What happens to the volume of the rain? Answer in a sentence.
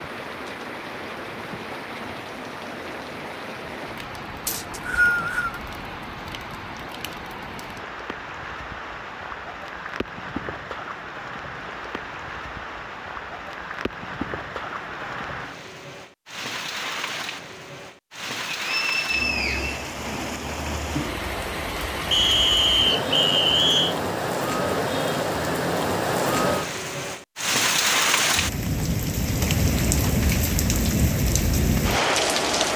The volume of the rain goes up.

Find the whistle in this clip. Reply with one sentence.
You can hear the whistle from 4.5 to 5.6 s, from 18.5 to 19.9 s and from 22.1 to 23.9 s.